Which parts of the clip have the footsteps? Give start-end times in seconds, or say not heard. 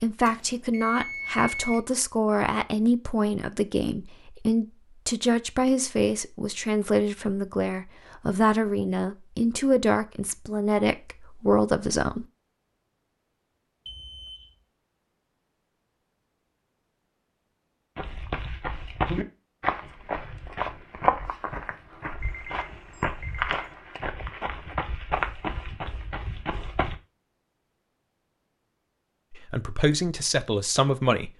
17.9-26.9.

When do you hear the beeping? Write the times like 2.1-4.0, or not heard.
0.2-1.8, 13.8-14.6, 22.2-23.7.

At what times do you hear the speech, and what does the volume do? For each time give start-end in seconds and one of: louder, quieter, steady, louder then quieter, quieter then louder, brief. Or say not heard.
0.0-12.2 steady
29.3-31.3 brief.